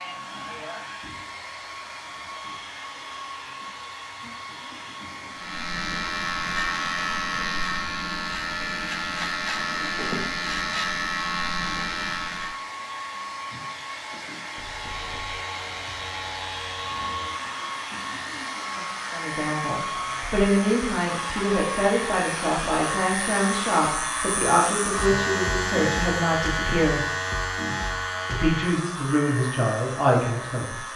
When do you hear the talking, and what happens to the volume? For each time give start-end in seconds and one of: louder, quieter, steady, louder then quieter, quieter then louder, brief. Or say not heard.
19.1-27.0 steady
28.3-30.9 brief.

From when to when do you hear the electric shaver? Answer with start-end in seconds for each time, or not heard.
5.3-12.7, 14.7-30.9.